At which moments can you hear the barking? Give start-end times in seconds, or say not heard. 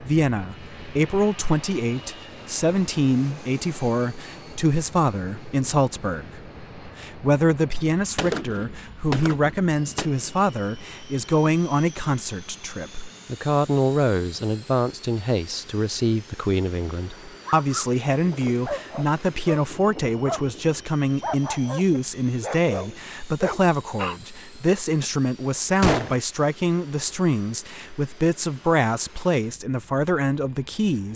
17.4-24.2.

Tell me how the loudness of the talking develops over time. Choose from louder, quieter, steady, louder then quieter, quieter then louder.
steady.